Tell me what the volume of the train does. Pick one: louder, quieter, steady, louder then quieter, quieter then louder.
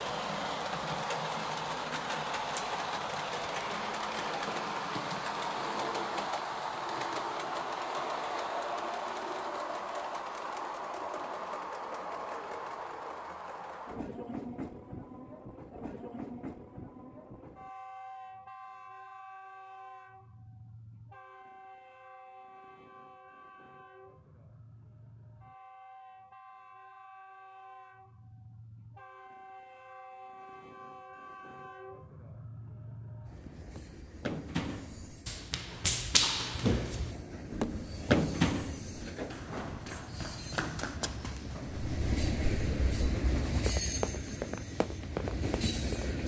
quieter then louder.